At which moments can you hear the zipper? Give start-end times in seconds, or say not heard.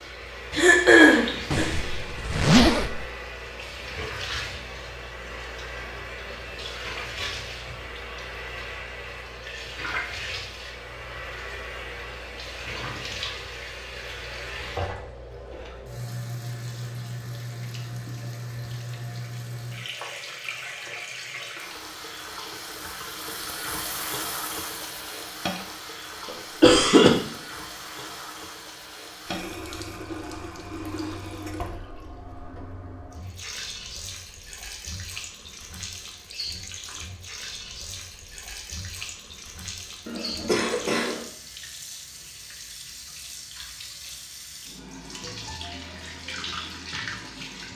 1.5-3.0.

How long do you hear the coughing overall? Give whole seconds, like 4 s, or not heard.
3 s.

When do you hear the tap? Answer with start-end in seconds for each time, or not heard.
0.0-47.7.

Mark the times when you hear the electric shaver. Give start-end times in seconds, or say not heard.
not heard.